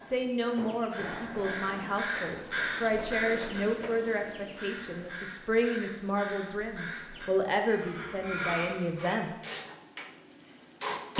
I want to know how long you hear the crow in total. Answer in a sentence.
The crow can be heard for 9 seconds in total.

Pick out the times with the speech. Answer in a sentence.
You can hear the speech from 0.0 to 9.3 s.